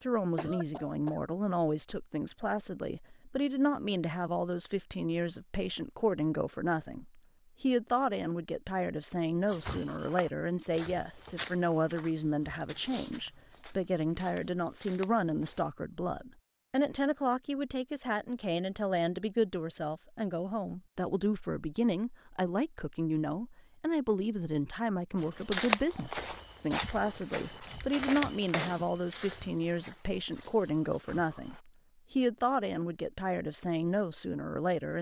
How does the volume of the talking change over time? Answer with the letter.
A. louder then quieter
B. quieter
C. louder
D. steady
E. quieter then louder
D.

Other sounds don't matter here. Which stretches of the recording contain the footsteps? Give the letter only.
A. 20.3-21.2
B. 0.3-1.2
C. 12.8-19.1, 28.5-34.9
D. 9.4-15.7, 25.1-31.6
D.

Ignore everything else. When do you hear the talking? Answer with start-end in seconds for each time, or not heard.
0.0-34.9.